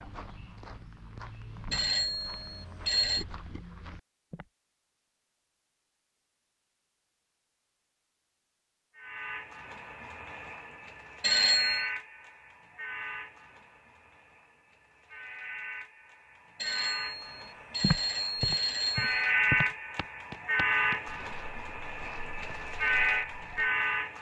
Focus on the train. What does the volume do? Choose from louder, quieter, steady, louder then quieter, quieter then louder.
quieter then louder.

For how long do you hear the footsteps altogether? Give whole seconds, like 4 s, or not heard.
10 s.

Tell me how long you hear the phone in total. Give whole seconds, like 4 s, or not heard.
5 s.